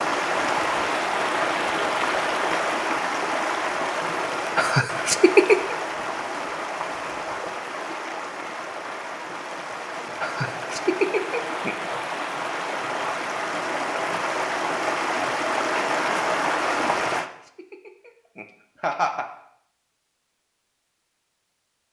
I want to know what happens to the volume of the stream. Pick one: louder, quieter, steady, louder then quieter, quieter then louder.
quieter then louder.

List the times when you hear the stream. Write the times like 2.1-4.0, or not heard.
0.0-17.3.